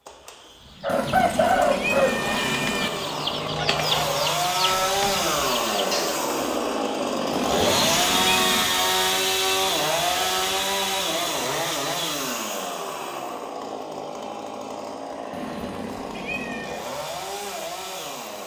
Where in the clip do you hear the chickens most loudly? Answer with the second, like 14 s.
2 s.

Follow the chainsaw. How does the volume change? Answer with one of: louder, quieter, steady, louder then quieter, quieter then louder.
louder then quieter.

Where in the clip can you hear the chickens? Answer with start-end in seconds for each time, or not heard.
0.8-6.2.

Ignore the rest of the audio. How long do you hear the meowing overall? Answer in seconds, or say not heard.
5 s.